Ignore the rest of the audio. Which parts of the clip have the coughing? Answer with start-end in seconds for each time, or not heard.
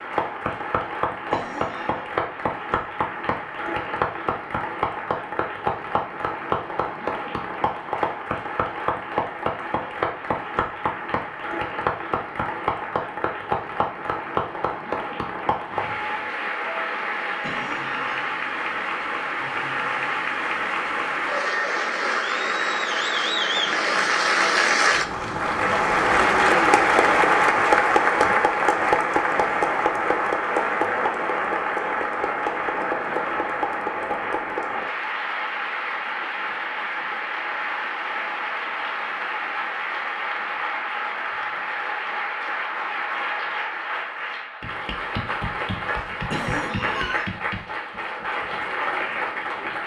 1.3-2.0, 17.4-18.3, 46.3-47.3.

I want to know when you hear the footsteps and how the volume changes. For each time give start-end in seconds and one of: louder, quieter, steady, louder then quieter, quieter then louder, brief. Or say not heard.
not heard.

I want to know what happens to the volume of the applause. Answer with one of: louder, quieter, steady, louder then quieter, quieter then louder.
louder then quieter.